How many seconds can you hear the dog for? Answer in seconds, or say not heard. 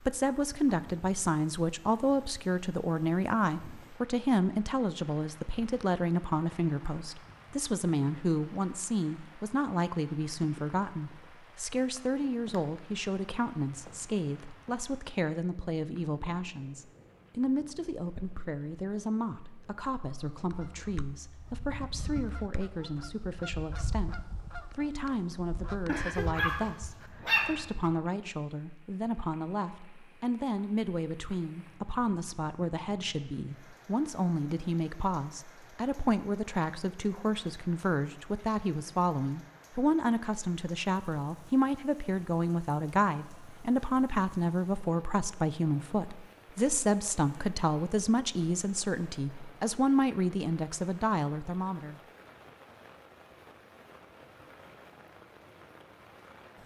2 s.